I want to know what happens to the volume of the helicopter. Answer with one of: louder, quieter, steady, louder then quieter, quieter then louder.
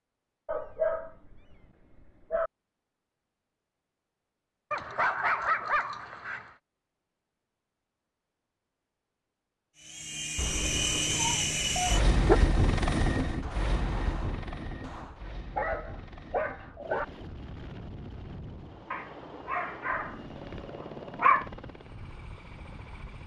quieter.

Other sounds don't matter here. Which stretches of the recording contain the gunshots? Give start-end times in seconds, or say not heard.
13.4-15.3.